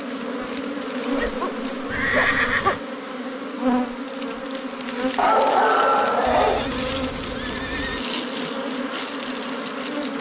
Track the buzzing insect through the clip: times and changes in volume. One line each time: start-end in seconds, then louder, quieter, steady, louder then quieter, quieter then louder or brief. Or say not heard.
0.0-10.1 steady.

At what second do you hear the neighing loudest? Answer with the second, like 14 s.
2 s.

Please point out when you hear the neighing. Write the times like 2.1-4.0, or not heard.
1.9-2.8, 6.2-8.1.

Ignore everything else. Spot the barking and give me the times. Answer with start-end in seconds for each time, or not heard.
1.1-2.8, 5.2-6.7.